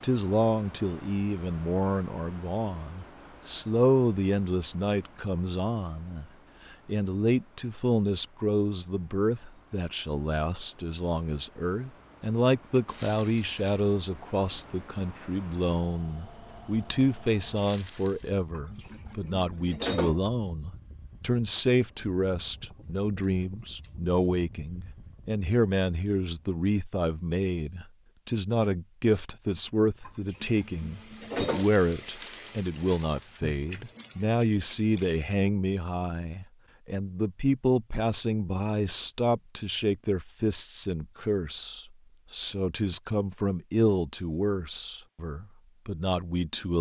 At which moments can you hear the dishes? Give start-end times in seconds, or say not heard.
18.5-20.2, 30.1-31.7.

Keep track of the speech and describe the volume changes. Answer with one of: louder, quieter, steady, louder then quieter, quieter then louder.
steady.